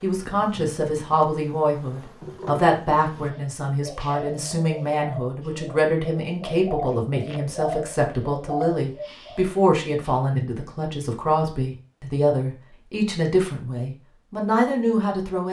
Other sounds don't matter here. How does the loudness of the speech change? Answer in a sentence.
The loudness of the speech stays about the same.